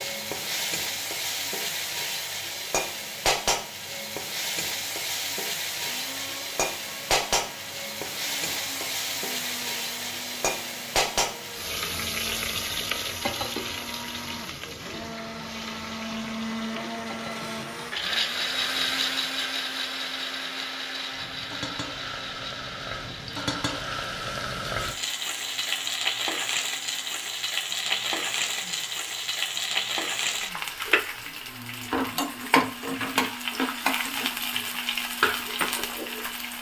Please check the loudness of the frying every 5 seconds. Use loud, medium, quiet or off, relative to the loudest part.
loud, loud, loud, quiet, medium, loud, loud, loud.